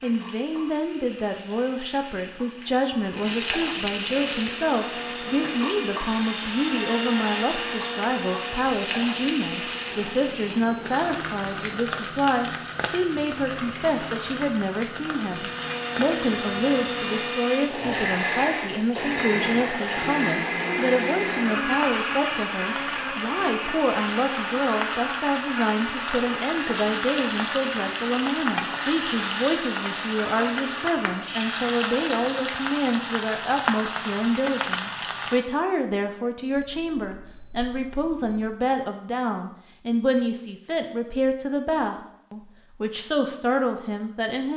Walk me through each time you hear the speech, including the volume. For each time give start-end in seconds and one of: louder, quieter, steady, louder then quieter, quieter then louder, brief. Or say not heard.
0.0-44.5 steady.